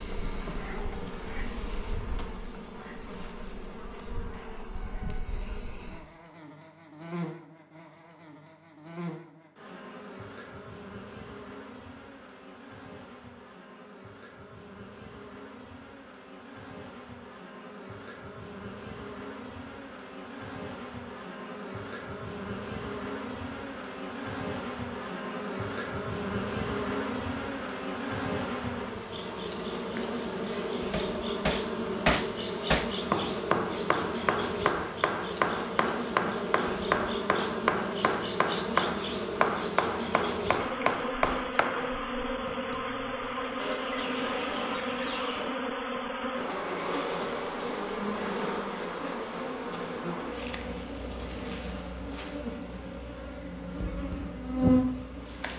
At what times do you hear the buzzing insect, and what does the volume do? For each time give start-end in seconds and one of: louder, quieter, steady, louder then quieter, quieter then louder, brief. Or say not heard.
0.0-55.5 louder.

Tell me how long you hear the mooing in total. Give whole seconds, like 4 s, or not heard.
2 s.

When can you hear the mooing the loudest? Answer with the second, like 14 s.
1 s.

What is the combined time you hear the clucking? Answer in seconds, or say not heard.
2 s.